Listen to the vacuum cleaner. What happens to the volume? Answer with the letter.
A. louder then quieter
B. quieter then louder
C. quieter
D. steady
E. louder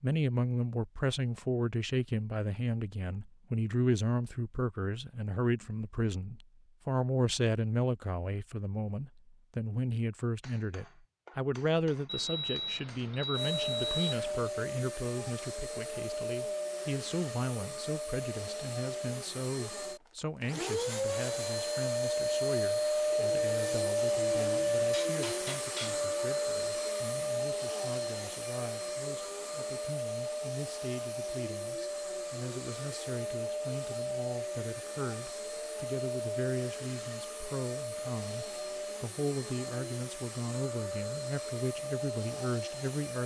A.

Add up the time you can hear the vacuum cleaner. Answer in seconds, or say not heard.
30 s.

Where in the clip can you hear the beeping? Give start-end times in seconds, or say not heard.
12.1-14.5.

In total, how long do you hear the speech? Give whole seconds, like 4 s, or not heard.
43 s.